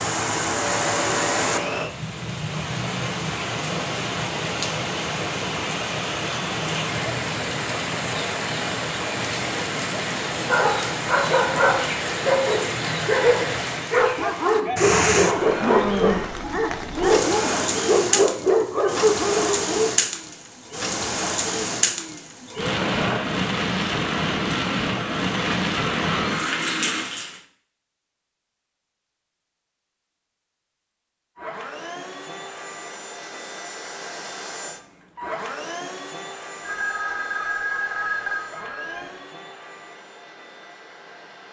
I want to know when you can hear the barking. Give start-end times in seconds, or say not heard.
10.4-20.0.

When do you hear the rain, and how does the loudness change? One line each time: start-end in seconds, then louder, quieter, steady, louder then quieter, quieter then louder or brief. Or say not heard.
0.0-27.4 steady.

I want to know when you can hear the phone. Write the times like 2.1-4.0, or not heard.
36.6-39.1.